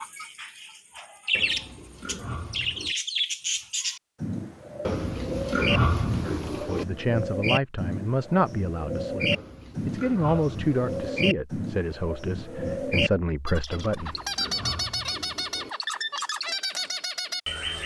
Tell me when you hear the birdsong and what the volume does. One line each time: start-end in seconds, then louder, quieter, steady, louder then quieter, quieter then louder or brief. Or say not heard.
0.0-17.8 steady.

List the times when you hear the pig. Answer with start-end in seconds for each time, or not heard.
1.3-3.0, 4.8-6.8, 9.3-11.3, 13.7-15.7.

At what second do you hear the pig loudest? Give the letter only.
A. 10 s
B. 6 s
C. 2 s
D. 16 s
B.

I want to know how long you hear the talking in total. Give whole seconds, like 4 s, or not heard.
8 s.